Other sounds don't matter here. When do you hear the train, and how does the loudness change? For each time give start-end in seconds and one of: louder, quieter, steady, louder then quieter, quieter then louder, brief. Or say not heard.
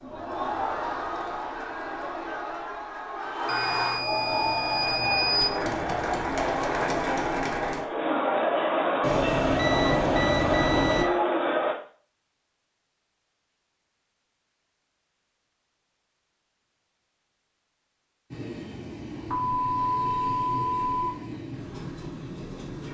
18.3-22.8 steady.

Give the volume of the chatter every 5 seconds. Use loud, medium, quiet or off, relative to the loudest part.
medium, loud, loud, off, off.